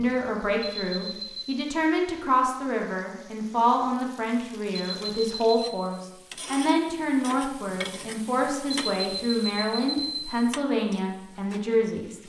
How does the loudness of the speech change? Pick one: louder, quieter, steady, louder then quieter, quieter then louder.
steady.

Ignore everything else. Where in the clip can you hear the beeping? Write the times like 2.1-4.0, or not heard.
0.6-1.6, 4.7-5.7, 8.7-10.3.